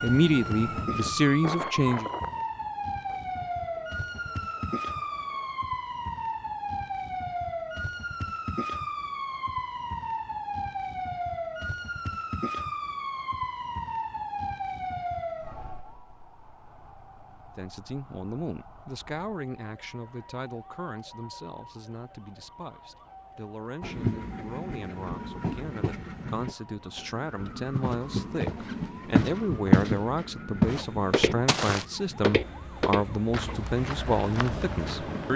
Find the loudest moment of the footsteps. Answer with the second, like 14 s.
30 s.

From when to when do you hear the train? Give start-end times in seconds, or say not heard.
0.0-5.5, 23.8-35.3.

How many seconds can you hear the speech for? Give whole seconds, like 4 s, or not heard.
20 s.